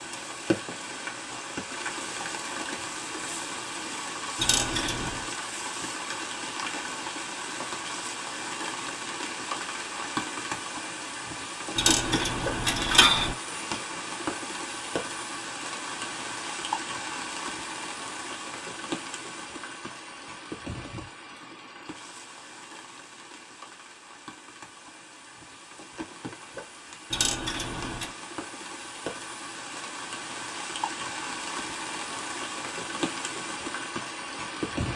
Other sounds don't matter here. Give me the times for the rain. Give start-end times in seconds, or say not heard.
0.0-34.9.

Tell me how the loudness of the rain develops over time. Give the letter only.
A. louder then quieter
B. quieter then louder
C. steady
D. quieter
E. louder
B.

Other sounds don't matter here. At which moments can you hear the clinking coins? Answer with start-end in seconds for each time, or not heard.
4.3-5.2, 11.8-13.3, 27.1-28.1.